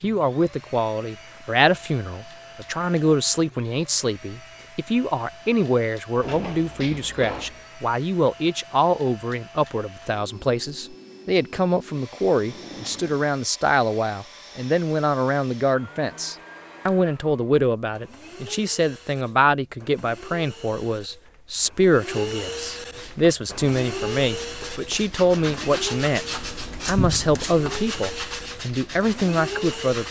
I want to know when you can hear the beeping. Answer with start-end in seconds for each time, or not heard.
not heard.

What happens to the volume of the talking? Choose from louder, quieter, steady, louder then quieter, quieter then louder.
steady.